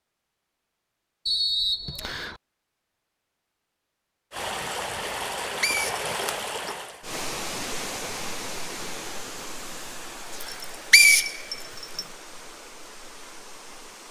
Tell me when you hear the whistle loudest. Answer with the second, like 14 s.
11 s.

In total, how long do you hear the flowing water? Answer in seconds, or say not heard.
10 s.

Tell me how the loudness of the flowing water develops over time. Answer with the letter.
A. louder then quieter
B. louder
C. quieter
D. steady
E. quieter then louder
C.